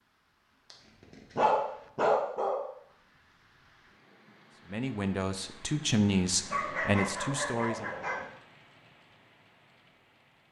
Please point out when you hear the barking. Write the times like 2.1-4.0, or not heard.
0.7-2.5, 6.5-8.2.